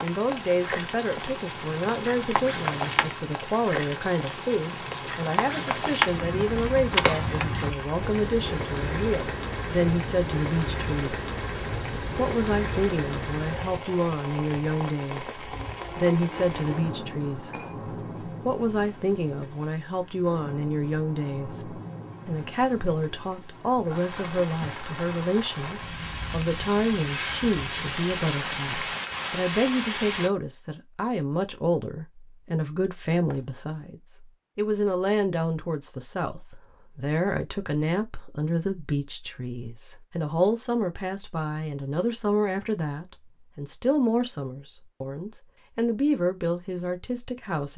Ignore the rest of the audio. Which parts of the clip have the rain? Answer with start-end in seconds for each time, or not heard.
0.0-30.3.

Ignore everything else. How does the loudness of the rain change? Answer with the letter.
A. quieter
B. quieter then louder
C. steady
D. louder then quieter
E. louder
B.